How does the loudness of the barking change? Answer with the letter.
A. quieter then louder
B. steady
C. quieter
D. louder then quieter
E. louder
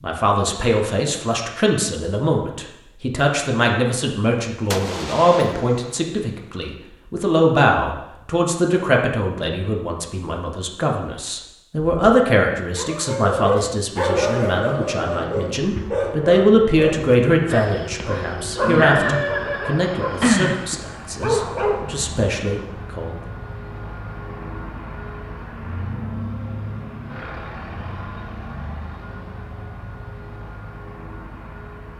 A.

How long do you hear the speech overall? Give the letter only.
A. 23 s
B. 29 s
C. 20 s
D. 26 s
A.